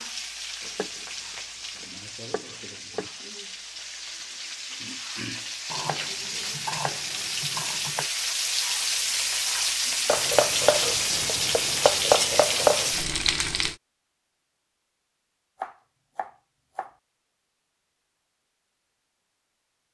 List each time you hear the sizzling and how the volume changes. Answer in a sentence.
The sizzling can be heard from 0.0 to 13.8 s, getting louder.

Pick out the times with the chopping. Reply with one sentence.
The chopping can be heard from 0.6 to 1.1 s, from 1.8 to 3.2 s, from 5.7 to 8.1 s, from 10.1 to 12.9 s and from 15.6 to 16.9 s.